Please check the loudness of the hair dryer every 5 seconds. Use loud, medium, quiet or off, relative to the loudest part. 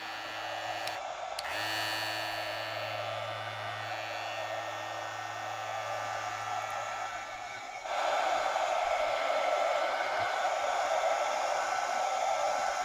medium, loud, loud.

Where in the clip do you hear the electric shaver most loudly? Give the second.
2 s.